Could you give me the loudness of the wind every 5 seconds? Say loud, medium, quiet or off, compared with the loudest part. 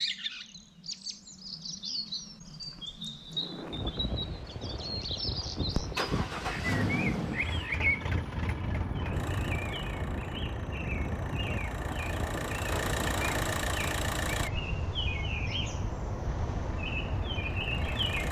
loud, loud, loud, medium.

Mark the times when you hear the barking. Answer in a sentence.
You can't hear the barking here.